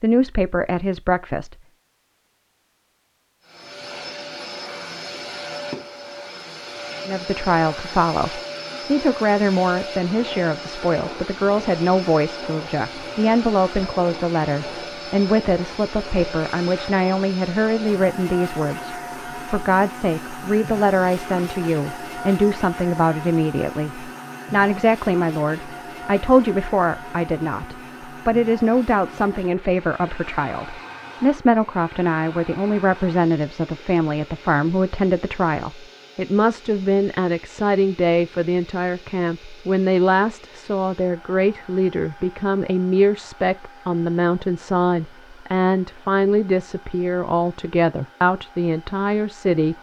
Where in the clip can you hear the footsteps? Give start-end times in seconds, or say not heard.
not heard.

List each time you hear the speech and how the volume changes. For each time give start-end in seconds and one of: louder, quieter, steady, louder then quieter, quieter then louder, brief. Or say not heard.
0.0-1.6 brief
7.0-49.7 steady.